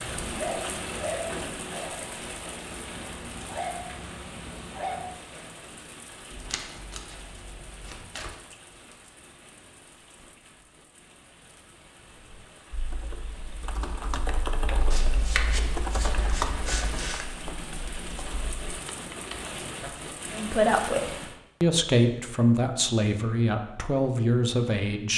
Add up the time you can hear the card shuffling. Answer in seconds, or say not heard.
4 s.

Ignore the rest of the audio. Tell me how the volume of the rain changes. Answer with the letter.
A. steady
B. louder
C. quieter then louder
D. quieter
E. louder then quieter
C.